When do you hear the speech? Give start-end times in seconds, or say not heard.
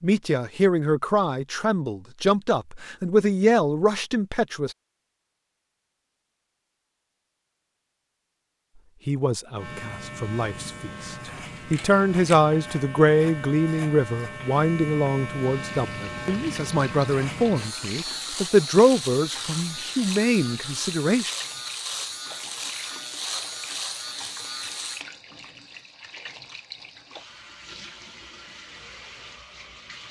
0.0-4.8, 9.1-21.3.